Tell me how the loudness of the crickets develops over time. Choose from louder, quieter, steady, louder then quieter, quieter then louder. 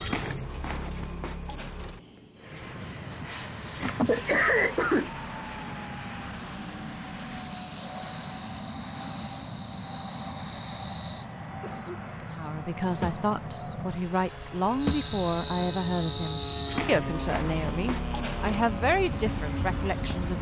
quieter then louder.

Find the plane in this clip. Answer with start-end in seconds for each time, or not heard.
2.4-20.3.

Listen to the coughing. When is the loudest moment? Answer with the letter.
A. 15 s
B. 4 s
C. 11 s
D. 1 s
B.